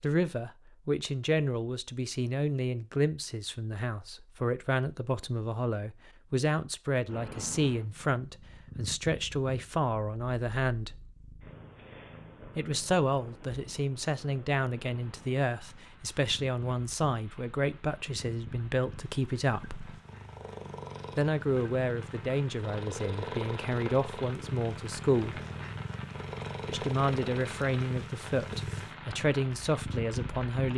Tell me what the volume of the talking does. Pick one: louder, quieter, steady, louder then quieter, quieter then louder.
steady.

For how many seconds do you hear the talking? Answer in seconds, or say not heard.
27 s.